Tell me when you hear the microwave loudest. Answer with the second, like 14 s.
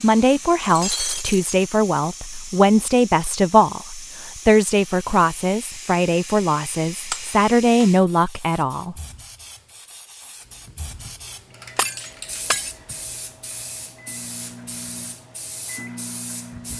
16 s.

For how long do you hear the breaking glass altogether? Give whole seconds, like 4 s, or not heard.
3 s.